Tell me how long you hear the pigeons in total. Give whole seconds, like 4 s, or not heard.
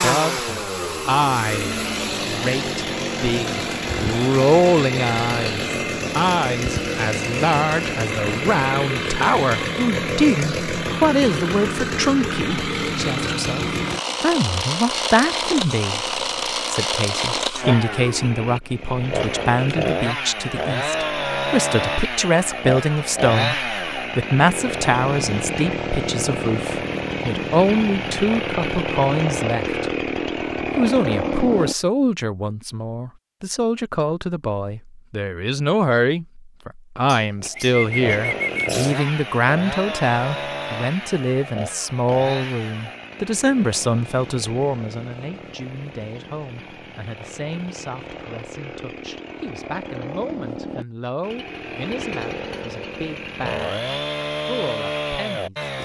2 s.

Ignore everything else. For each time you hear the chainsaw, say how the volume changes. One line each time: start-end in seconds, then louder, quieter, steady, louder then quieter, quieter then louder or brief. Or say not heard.
0.0-31.8 steady
37.4-55.8 quieter then louder.